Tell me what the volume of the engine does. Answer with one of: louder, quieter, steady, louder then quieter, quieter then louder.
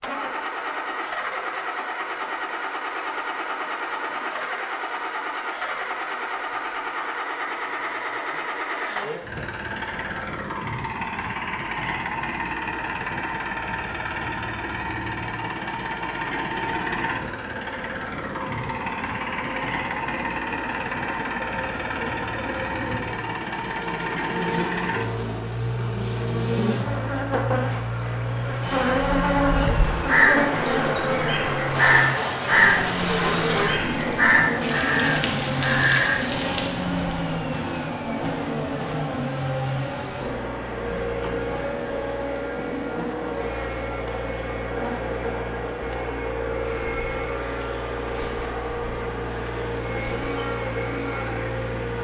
steady.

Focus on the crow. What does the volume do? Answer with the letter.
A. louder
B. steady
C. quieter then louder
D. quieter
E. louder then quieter
B.